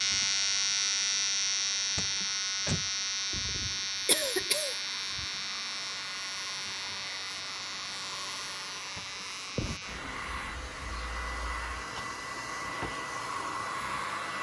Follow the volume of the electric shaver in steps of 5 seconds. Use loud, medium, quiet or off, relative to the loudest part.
loud, medium, quiet.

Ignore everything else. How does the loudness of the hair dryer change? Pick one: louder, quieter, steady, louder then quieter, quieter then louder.
louder.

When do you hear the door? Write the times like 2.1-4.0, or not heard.
1.9-2.9, 8.9-9.9.